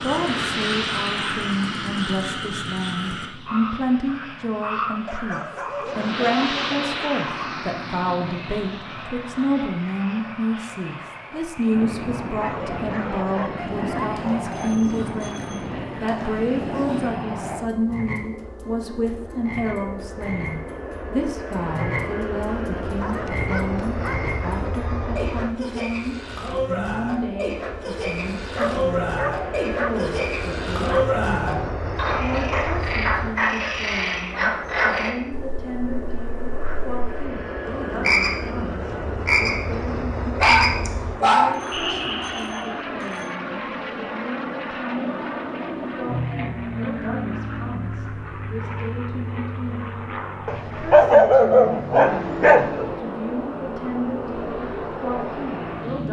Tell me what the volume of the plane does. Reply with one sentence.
The loudness of the plane stays about the same.